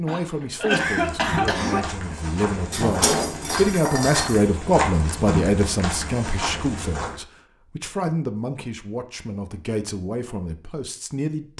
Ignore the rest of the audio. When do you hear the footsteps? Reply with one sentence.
You can hear the footsteps from 0.9 to 7.2 s.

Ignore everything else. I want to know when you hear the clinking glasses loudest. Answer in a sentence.
The volume of the clinking glasses peaks at 3 seconds.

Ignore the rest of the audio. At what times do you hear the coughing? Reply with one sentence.
You can hear the coughing from 0.1 to 1.9 s.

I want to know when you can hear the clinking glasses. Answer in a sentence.
You can hear the clinking glasses from 2.7 to 4.5 s.